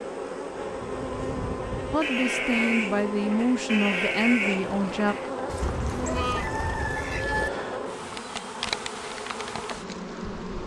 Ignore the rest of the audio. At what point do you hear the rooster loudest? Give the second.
7 s.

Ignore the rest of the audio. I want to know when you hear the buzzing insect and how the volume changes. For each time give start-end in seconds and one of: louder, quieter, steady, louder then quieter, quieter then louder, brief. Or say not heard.
0.0-10.6 steady.